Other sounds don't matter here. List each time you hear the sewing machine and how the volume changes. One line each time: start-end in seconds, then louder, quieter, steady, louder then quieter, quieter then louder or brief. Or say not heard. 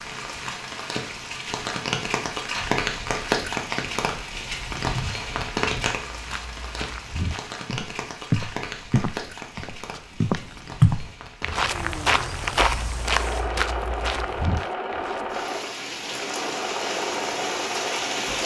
12.9-18.4 steady.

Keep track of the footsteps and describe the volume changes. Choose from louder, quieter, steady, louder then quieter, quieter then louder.
louder then quieter.